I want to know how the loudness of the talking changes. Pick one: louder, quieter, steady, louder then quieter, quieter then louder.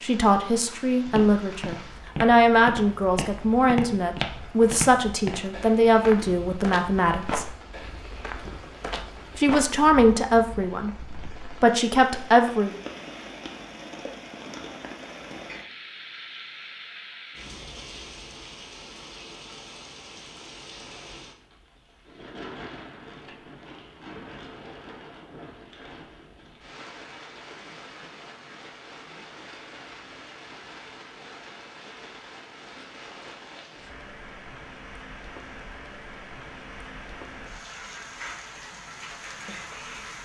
steady.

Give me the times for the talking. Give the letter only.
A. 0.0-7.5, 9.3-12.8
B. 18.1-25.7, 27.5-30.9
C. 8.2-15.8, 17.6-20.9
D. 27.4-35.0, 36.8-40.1
A.